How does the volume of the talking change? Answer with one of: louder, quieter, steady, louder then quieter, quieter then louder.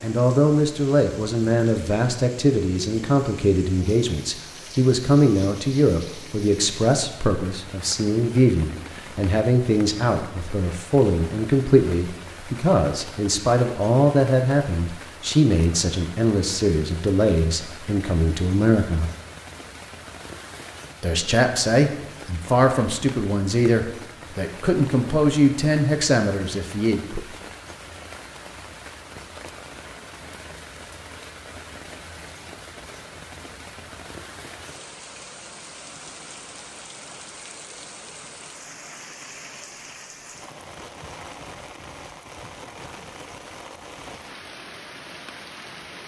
steady.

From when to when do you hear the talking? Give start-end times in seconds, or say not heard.
0.0-19.1, 21.0-27.2.